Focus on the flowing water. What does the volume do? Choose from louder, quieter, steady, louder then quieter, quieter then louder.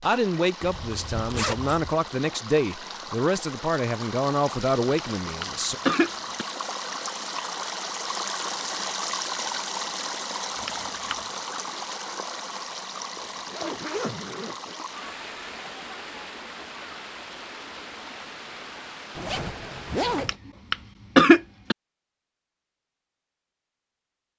louder then quieter.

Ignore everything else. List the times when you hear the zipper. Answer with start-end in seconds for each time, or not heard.
0.6-1.9, 13.2-14.8, 19.1-20.4.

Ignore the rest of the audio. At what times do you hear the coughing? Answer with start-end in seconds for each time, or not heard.
4.8-6.5, 10.6-11.2, 20.1-21.8.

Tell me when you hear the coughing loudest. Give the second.
21 s.